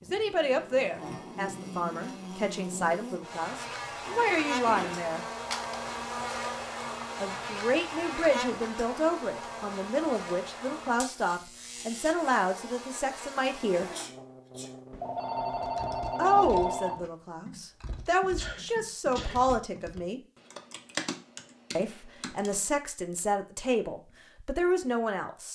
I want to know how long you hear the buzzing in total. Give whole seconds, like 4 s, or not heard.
17 s.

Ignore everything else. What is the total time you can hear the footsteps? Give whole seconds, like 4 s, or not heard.
not heard.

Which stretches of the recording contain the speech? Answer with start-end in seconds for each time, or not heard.
0.0-5.2, 7.2-13.9, 16.1-20.2, 21.8-25.5.